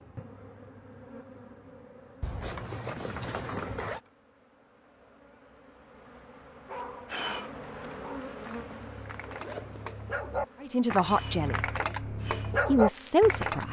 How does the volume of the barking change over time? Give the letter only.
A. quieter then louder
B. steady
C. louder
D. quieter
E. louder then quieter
C.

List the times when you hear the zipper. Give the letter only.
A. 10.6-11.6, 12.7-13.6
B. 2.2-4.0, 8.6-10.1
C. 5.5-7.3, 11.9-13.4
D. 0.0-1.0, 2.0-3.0
B.